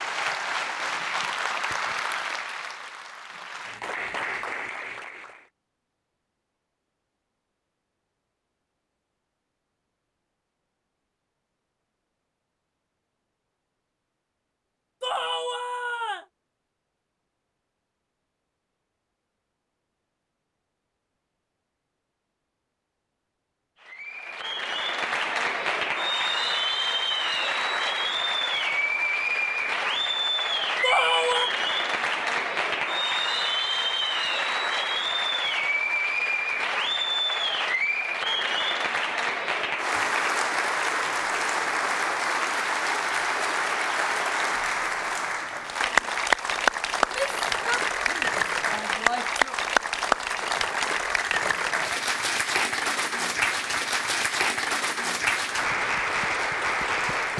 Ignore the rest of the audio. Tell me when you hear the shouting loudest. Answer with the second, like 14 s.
31 s.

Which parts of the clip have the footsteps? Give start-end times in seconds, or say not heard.
not heard.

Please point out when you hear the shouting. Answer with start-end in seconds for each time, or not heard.
15.0-16.2, 30.8-31.5, 47.0-49.5.